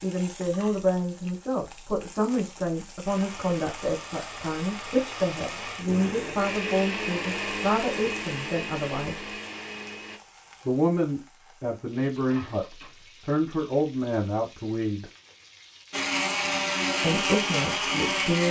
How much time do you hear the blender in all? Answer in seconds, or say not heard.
10 s.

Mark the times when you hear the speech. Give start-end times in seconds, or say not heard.
0.0-9.3, 10.7-15.1, 17.0-18.4.